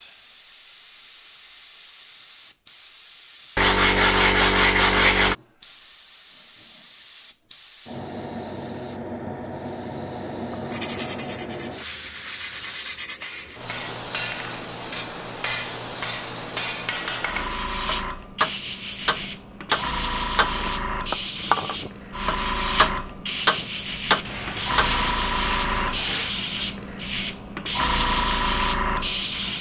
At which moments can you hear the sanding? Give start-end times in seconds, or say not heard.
3.5-5.3, 10.7-13.7, 24.2-26.4.